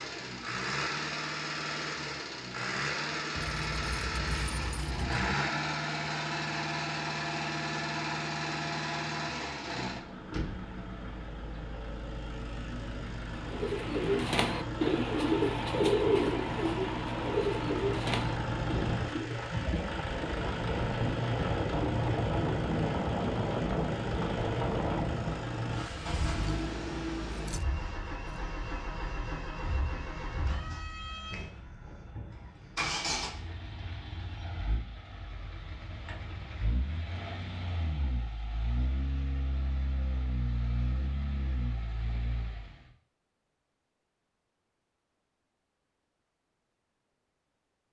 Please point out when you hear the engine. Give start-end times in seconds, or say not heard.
0.0-42.9.